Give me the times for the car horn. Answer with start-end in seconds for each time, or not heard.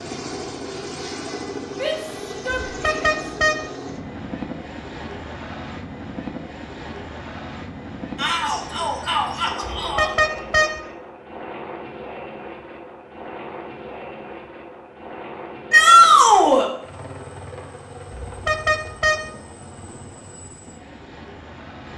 2.6-3.6, 9.6-10.8, 18.2-19.2.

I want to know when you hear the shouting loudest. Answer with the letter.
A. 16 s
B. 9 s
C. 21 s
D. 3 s
A.